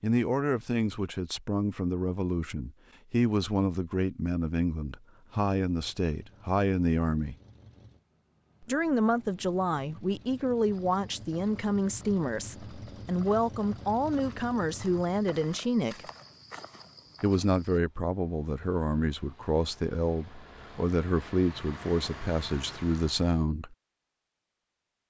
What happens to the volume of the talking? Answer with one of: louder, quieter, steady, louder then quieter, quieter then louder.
steady.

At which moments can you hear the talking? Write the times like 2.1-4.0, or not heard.
0.0-7.3, 8.6-16.1, 17.2-23.8.